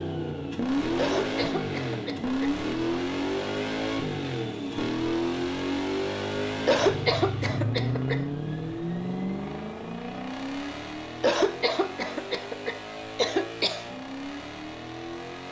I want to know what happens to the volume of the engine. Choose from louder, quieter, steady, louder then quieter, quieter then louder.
quieter.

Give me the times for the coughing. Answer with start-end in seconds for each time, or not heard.
0.9-2.5, 6.7-8.2, 11.2-13.8.